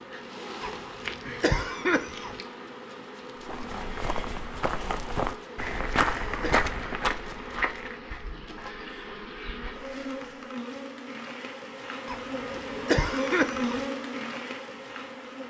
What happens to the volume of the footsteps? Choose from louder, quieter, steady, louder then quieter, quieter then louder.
louder then quieter.